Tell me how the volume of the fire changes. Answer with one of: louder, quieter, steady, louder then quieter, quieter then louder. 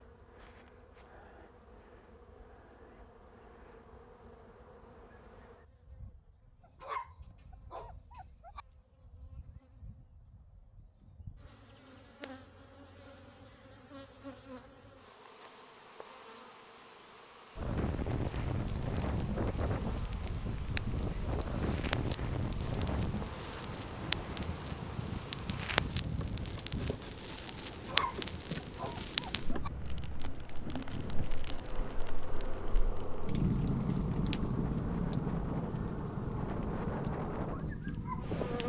louder.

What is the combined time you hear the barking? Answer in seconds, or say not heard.
4 s.